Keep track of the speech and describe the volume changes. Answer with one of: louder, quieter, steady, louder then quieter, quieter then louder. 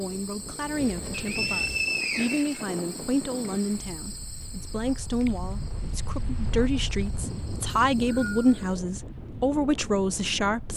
louder.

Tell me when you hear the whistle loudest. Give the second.
2 s.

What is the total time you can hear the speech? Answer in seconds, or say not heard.
11 s.